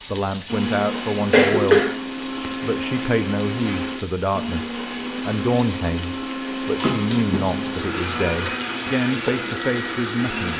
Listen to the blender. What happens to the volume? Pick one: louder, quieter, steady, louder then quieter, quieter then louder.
steady.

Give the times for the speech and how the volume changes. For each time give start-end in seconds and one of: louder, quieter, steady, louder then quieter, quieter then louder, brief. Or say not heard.
0.1-1.8 brief
2.6-10.5 steady.